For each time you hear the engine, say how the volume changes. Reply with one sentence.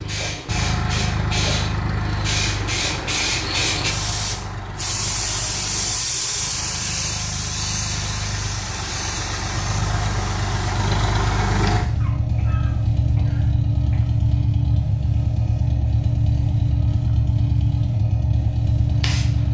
The engine can be heard from 0.0 to 19.4 s, getting quieter then louder.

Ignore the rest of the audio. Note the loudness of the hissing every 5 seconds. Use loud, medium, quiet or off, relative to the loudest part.
loud, loud, medium, medium.